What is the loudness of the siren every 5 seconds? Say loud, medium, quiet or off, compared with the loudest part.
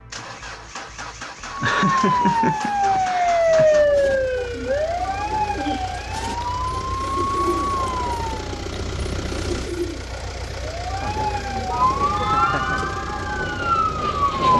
loud, medium, loud.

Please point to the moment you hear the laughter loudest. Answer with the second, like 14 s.
2 s.